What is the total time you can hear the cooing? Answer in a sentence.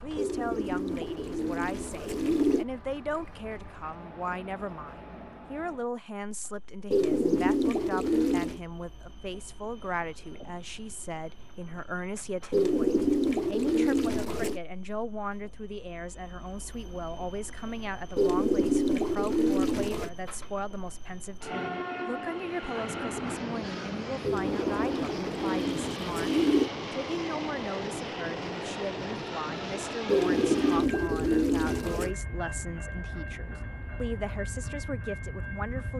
You can hear the cooing for 13 seconds altogether.